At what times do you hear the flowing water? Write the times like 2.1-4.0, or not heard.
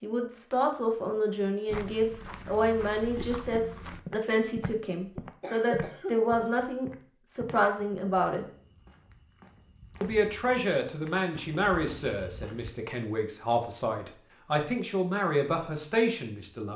not heard.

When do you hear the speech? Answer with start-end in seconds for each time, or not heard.
0.0-8.4, 10.0-16.7.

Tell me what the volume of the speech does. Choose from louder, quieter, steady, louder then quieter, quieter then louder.
steady.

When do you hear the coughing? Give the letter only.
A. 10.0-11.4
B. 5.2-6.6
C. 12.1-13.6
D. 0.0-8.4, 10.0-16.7
B.